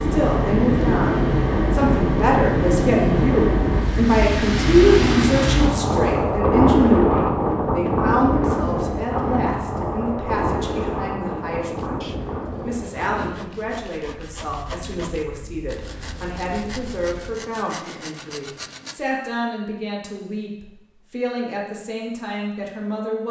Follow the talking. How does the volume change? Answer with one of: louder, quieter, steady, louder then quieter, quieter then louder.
quieter.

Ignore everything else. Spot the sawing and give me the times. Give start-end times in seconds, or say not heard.
11.6-19.0.